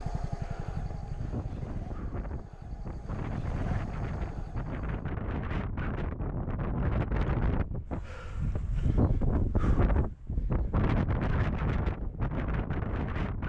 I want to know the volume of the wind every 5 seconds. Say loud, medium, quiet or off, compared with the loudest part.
medium, loud, loud.